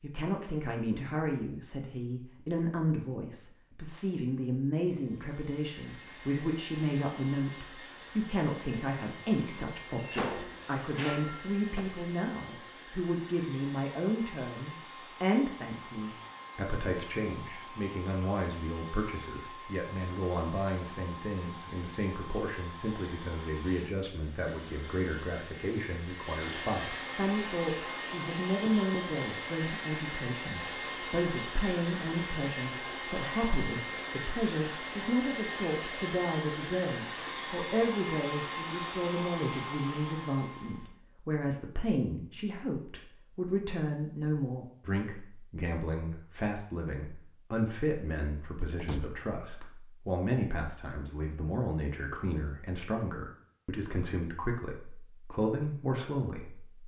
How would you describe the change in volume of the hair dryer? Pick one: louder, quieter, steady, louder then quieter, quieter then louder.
louder.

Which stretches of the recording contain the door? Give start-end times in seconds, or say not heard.
9.9-12.1, 28.4-29.1, 48.6-49.1.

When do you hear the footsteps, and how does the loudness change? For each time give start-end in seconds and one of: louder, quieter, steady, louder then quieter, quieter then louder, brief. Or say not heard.
not heard.